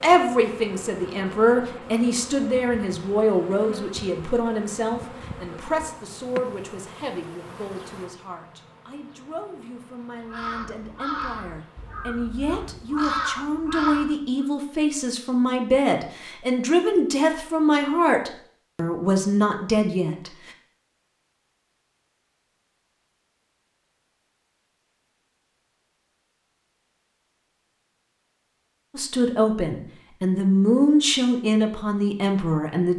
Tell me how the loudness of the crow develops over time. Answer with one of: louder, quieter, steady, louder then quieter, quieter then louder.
quieter then louder.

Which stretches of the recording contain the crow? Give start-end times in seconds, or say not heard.
10.2-14.4.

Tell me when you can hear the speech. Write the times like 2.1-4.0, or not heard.
0.0-20.5, 28.9-32.9.